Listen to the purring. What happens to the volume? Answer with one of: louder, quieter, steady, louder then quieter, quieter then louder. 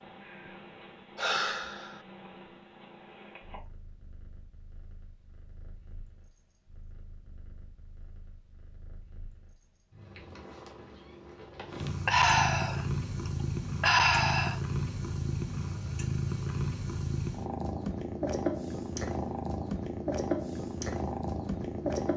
quieter then louder.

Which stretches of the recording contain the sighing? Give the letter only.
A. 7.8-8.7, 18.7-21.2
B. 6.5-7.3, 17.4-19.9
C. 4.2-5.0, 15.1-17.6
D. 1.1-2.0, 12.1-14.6
D.